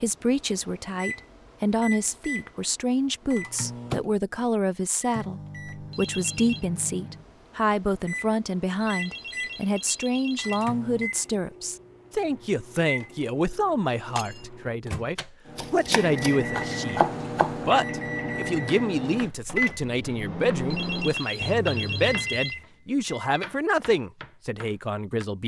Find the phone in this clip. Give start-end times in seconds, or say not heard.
5.9-6.7, 8.8-10.7, 20.7-22.6.